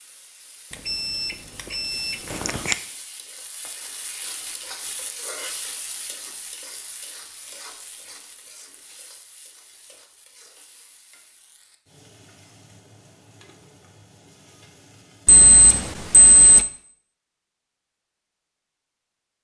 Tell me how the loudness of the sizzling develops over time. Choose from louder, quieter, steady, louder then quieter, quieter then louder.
louder then quieter.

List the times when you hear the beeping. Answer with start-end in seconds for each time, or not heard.
0.8-2.8, 15.2-16.6.